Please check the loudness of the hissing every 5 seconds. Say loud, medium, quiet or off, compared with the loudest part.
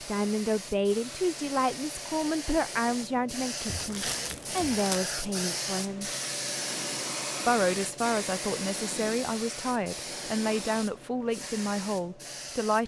loud, loud, medium.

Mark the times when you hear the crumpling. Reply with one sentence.
You can hear the crumpling from 3.6 to 5.0 s.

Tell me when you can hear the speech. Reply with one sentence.
The speech can be heard from 0.0 to 6.1 s and from 7.5 to 12.8 s.